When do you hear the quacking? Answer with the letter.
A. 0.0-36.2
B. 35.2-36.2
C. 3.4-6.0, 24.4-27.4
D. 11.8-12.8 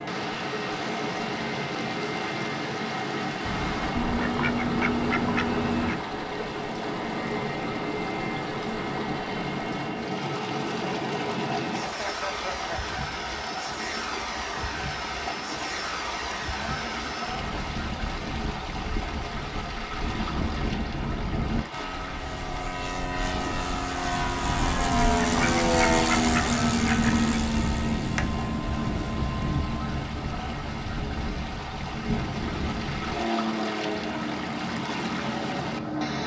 C.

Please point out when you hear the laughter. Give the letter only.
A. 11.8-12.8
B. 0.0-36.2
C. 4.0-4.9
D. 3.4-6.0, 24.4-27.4
A.